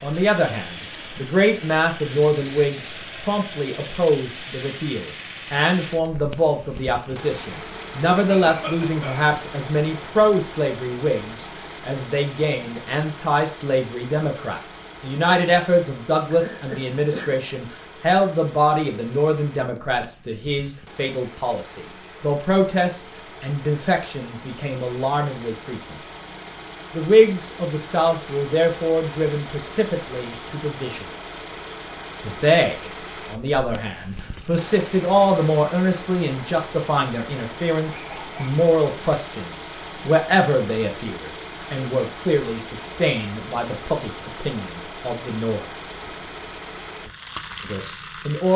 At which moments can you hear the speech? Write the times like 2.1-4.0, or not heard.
0.0-25.9, 26.9-31.1, 32.2-45.6, 47.6-48.5.